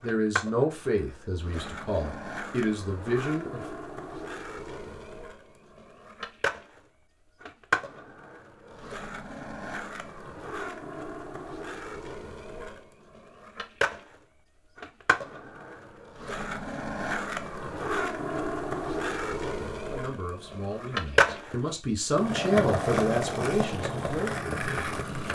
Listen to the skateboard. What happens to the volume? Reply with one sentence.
The loudness of the skateboard goes up.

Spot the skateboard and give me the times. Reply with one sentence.
You can hear the skateboard from 0.0 to 25.3 s.